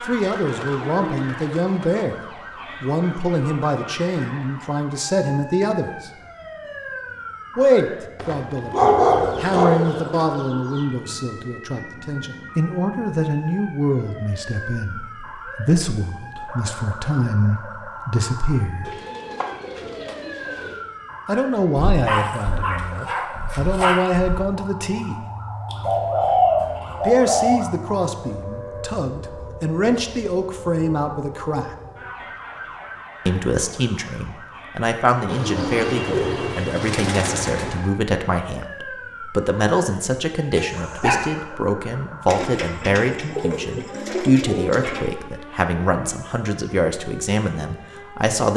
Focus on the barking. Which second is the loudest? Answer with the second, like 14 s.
9 s.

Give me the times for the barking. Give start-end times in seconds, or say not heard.
8.2-10.3, 21.8-24.4, 40.5-41.2.